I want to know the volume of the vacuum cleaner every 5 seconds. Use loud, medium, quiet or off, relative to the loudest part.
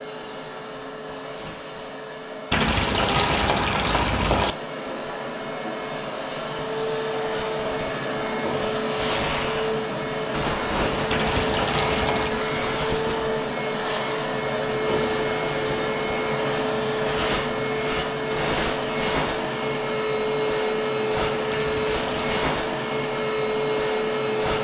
medium, loud, loud, loud, loud.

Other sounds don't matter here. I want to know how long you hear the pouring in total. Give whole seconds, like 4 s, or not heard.
4 s.